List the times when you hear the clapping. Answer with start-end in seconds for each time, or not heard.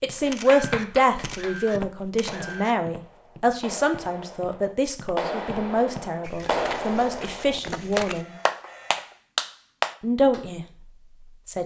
0.2-10.4.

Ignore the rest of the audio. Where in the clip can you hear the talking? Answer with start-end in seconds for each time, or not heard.
0.0-8.3, 10.0-11.6.